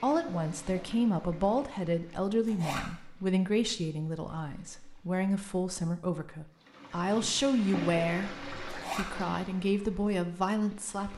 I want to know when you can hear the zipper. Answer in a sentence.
You can hear the zipper from 2.5 to 2.9 s and from 8.7 to 9.1 s.